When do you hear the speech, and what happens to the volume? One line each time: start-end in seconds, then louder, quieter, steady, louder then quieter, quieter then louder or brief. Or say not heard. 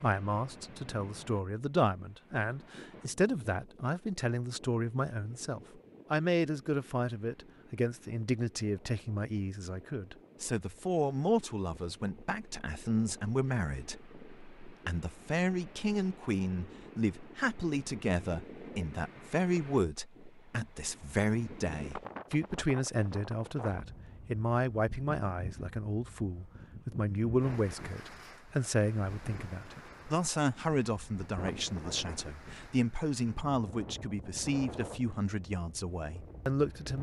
0.0-36.9 steady.